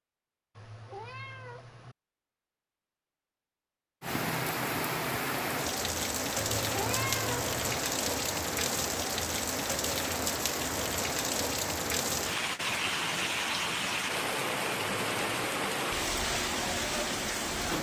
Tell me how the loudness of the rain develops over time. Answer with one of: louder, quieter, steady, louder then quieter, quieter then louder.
steady.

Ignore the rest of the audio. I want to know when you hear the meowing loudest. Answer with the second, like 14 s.
7 s.